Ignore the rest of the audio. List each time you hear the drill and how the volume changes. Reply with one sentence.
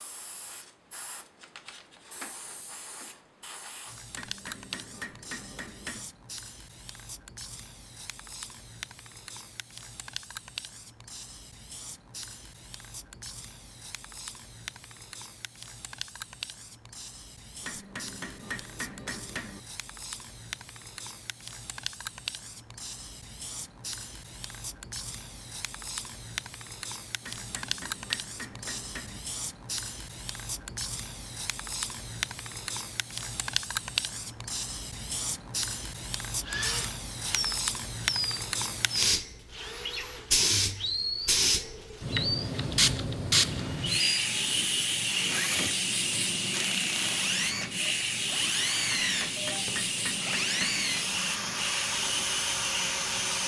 You can hear the drill from 36.4 to 53.4 s, at a steady volume.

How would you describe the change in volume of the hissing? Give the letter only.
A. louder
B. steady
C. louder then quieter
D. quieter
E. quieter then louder
A.